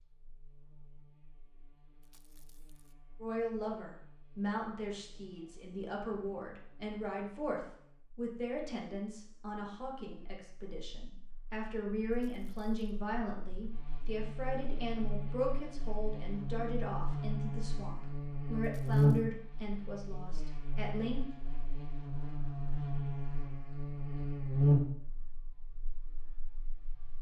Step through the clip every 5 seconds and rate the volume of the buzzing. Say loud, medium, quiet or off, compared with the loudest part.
quiet, quiet, quiet, loud, loud, quiet.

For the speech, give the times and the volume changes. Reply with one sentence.
The speech can be heard from 3.2 to 21.2 s, at a steady volume.